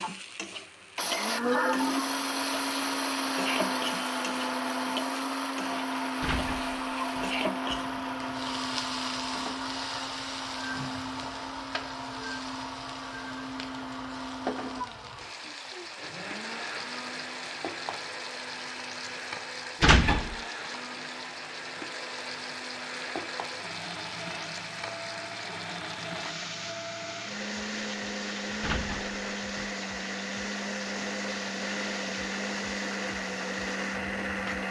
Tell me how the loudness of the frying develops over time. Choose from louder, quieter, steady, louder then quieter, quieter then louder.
steady.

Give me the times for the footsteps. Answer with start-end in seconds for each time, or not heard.
not heard.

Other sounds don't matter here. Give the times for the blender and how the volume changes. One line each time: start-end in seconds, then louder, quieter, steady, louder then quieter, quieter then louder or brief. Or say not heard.
0.0-34.6 quieter then louder.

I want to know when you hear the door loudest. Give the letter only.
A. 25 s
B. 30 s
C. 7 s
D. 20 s
D.